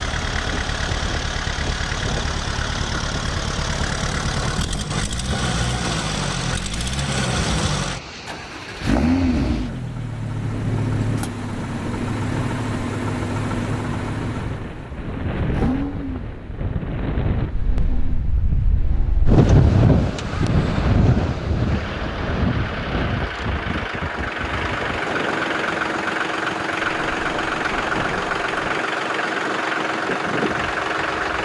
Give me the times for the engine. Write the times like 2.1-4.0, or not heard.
0.0-31.3.